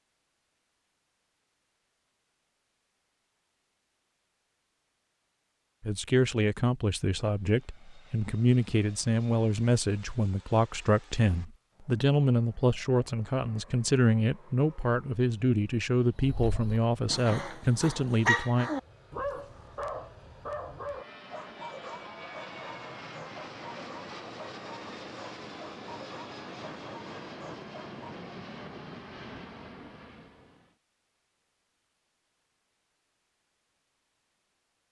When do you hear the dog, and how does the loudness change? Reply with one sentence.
The dog can be heard from 16.1 to 28.2 s, getting quieter.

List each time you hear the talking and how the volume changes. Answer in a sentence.
You can hear the talking from 5.8 to 18.7 s, at a steady volume.